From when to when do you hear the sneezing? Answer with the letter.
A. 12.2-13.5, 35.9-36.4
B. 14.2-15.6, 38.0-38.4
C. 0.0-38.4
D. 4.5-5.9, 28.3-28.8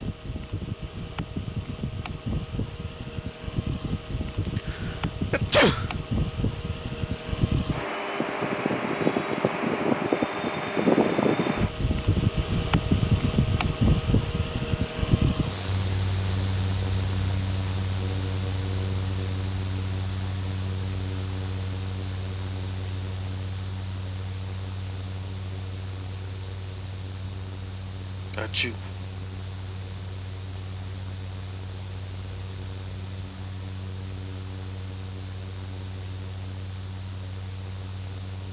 D.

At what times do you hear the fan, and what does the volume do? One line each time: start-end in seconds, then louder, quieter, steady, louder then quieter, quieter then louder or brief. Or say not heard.
0.0-38.4 louder then quieter.